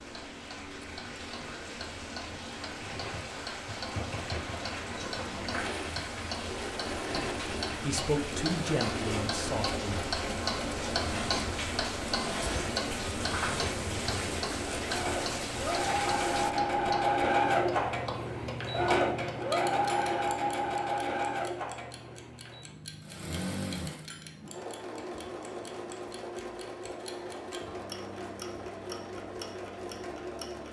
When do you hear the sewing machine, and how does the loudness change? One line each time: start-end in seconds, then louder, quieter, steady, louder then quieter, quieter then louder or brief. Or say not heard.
2.7-30.6 louder then quieter.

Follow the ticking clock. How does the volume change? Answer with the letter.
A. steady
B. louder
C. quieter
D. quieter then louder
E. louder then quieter
E.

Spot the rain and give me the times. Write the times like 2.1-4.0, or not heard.
0.0-16.6.